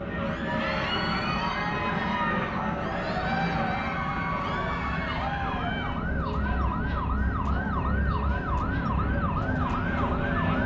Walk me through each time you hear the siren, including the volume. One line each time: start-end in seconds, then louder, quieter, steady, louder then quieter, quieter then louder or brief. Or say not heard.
0.0-10.6 louder.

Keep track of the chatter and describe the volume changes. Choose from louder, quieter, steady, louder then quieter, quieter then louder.
quieter.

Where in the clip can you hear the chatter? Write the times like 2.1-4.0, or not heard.
0.1-10.6.